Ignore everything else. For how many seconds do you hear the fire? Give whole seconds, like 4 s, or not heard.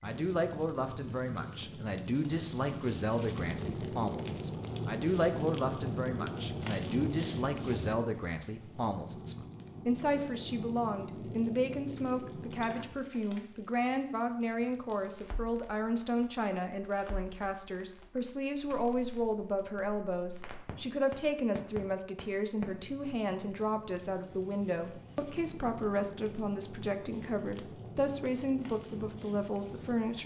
30 s.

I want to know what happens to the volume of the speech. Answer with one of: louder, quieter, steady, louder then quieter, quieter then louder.
steady.